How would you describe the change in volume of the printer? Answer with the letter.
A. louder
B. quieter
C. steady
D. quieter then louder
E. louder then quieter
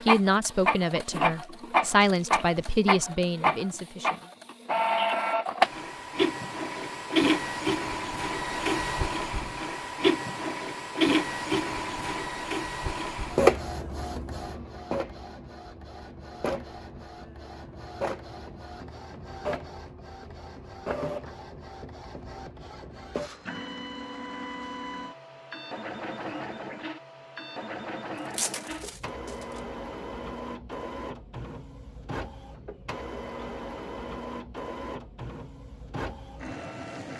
B.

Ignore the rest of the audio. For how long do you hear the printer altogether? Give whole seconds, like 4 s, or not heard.
37 s.